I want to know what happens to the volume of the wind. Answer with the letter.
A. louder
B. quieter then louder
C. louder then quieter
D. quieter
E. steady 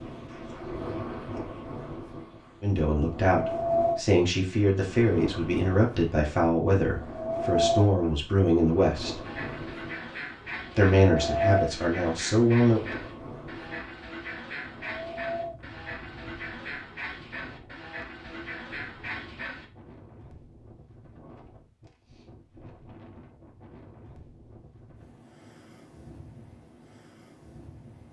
D.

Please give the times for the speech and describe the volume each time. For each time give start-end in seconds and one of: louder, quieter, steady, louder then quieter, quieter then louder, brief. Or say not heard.
2.6-9.2 steady
10.8-12.8 brief.